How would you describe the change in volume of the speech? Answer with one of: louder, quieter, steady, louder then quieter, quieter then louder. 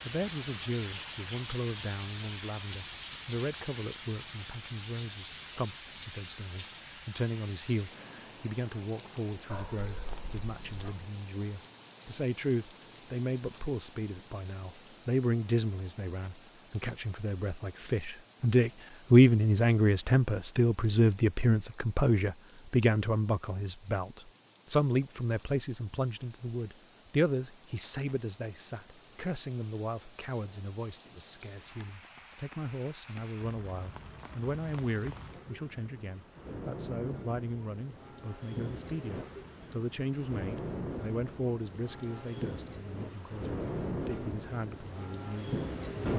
louder then quieter.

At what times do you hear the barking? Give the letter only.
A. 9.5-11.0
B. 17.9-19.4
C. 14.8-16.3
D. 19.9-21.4
A.